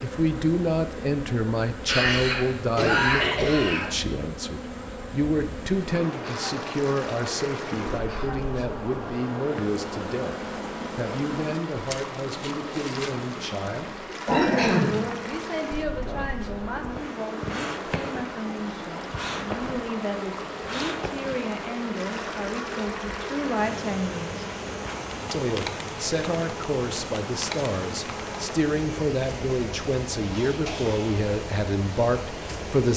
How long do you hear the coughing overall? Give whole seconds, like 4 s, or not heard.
4 s.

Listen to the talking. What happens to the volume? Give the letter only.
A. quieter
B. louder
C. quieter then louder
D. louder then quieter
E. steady
C.